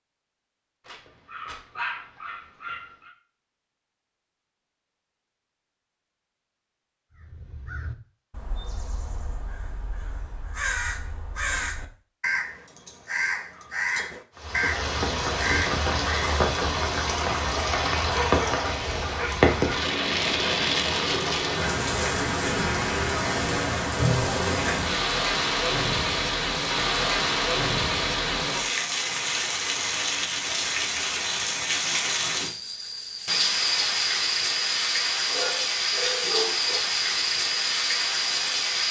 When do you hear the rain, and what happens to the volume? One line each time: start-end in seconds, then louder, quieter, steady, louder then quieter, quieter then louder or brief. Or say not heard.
14.3-38.8 steady.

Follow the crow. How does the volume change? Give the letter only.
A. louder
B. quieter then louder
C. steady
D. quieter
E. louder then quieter
A.